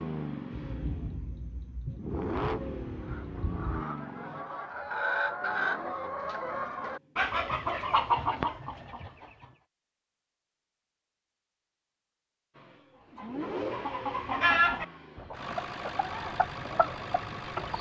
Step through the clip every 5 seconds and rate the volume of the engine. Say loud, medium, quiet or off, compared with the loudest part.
loud, quiet, loud, loud.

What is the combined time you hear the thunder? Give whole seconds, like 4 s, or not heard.
3 s.